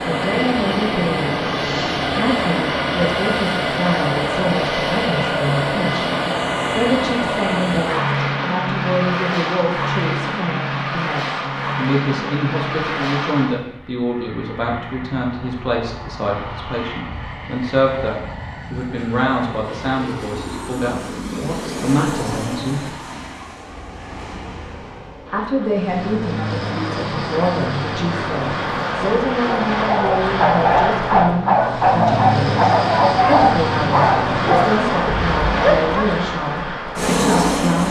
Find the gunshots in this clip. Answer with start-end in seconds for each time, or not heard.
not heard.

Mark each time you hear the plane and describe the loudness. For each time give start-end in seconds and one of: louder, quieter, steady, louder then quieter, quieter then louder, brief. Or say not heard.
0.0-37.8 quieter then louder.